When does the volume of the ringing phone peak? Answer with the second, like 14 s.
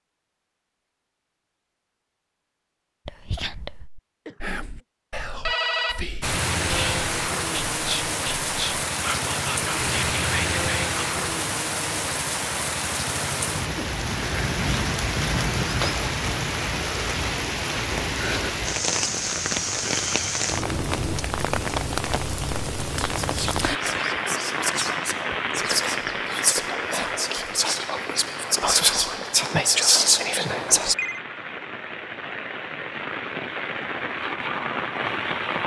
6 s.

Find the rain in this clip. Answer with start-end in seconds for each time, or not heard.
6.2-35.6.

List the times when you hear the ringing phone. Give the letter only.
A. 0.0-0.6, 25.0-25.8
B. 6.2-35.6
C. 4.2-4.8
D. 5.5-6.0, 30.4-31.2
D.